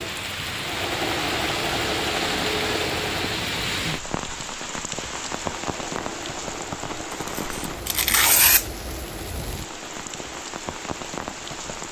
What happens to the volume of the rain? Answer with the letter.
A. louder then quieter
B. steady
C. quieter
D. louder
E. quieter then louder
C.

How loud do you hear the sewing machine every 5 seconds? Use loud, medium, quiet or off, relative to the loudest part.
loud, medium, quiet.